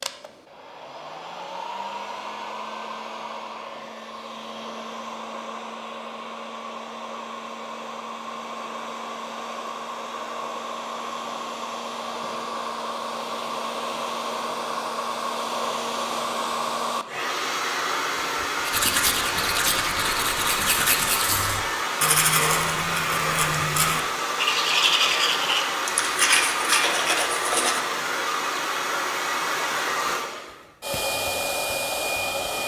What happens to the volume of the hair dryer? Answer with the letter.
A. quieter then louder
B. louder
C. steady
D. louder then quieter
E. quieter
B.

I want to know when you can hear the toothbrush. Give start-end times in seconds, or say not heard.
18.6-27.8.